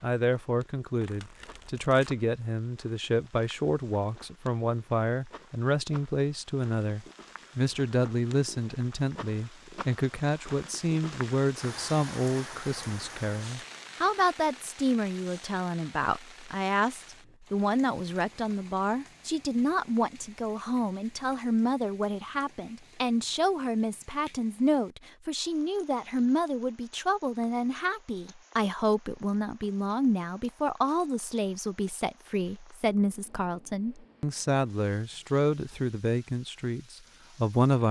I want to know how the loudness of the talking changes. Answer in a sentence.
The volume of the talking stays about the same.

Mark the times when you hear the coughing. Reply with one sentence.
You can't hear the coughing here.